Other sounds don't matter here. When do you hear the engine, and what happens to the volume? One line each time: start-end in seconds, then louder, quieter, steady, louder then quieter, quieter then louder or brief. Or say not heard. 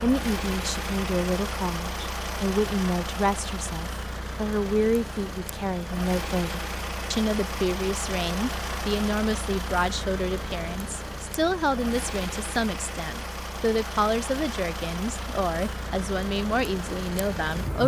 0.0-17.8 steady.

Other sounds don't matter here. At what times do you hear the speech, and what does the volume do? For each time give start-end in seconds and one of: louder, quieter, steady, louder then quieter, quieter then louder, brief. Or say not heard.
0.0-17.8 steady.